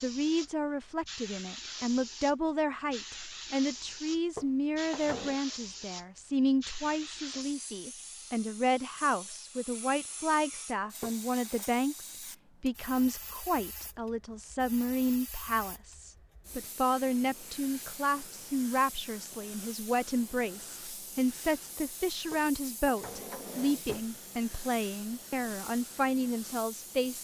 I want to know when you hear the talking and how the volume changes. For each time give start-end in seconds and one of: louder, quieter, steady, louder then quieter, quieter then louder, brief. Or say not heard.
0.0-27.1 steady.